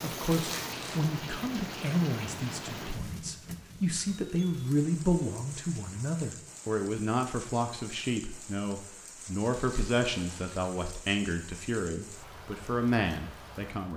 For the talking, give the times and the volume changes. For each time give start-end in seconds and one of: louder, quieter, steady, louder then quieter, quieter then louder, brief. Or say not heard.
0.0-13.9 steady.